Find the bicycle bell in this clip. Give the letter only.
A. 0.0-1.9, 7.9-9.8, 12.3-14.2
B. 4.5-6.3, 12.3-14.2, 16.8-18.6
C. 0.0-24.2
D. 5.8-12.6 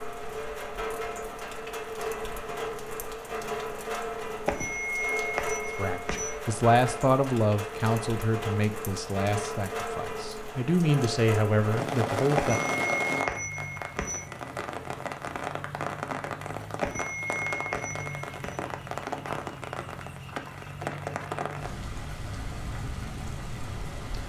B.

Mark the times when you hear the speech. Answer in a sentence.
The speech can be heard from 5.8 to 12.6 s.